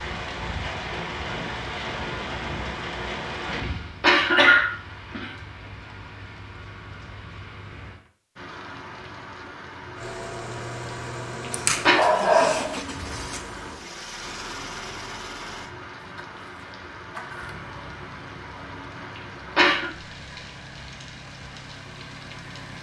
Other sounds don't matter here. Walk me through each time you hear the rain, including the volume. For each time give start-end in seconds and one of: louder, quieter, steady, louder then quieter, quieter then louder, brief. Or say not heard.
0.0-22.7 quieter.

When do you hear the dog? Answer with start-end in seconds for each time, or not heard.
11.5-12.8.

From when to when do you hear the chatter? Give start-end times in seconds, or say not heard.
not heard.